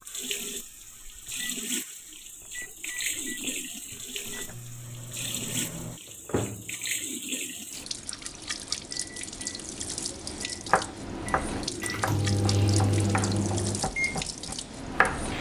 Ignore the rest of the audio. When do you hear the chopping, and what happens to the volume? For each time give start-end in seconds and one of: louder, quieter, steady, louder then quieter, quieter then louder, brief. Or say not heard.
10.7-15.2 steady.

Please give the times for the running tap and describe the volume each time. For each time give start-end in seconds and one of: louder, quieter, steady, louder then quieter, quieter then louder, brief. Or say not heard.
0.0-15.3 steady.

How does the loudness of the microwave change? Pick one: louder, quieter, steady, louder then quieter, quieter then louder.
louder.